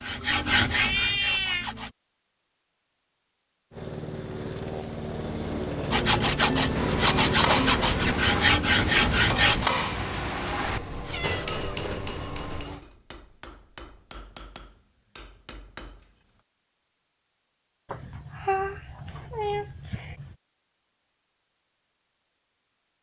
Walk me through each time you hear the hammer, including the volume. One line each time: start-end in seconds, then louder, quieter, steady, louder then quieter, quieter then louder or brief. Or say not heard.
6.7-16.4 quieter.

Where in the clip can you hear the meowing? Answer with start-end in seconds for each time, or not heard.
0.7-1.6, 10.7-12.4, 17.9-20.4.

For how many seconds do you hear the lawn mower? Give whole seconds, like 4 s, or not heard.
9 s.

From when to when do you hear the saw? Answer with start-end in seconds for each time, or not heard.
0.0-1.9, 5.9-11.4.